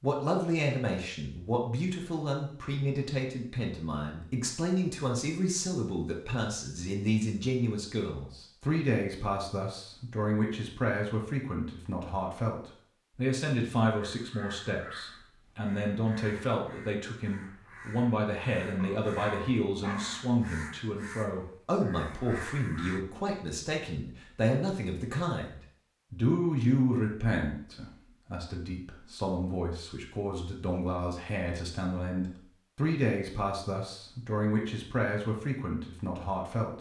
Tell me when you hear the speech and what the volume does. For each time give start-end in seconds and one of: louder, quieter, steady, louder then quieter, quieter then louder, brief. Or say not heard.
0.0-36.7 steady.